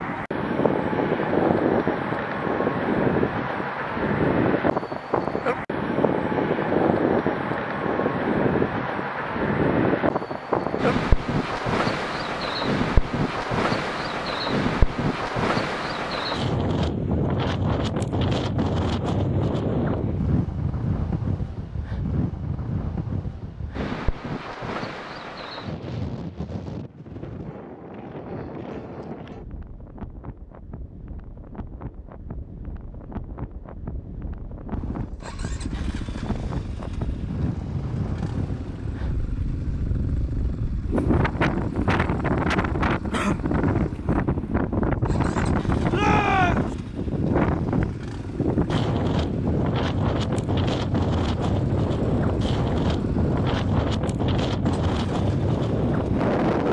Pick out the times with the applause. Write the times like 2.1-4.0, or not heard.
not heard.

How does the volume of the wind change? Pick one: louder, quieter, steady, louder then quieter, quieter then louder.
quieter then louder.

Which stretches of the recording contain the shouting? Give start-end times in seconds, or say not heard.
45.9-46.8.